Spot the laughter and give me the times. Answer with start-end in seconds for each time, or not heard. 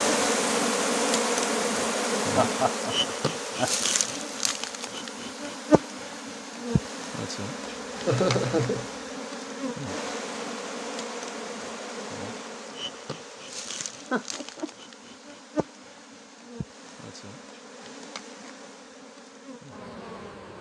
2.3-3.8, 7.7-8.8, 13.8-14.7.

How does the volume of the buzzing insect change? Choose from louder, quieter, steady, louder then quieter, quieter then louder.
quieter.